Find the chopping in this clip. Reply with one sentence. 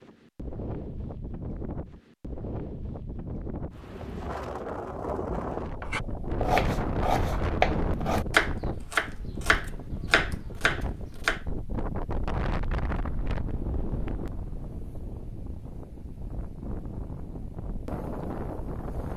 You can hear the chopping from 5.8 to 11.4 s.